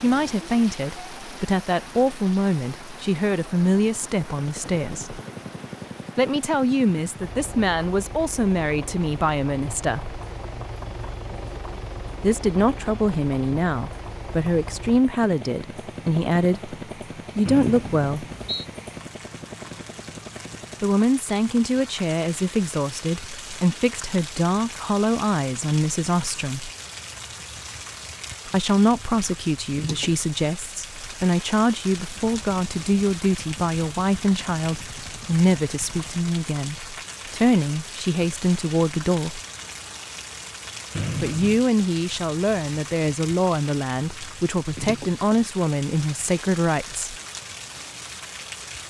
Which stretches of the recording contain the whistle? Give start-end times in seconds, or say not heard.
17.4-18.6, 41.0-41.6.